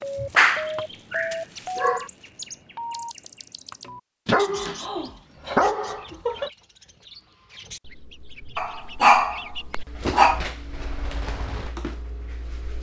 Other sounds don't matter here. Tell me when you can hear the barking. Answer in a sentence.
The barking can be heard from 0.2 to 2.0 s, from 4.2 to 6.5 s and from 8.6 to 10.4 s.